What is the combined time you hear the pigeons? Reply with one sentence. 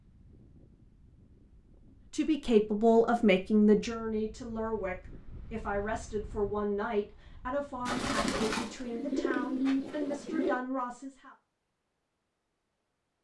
The pigeons can be heard for 3 seconds in total.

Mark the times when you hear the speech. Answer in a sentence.
The speech can be heard from 2.1 to 11.3 s.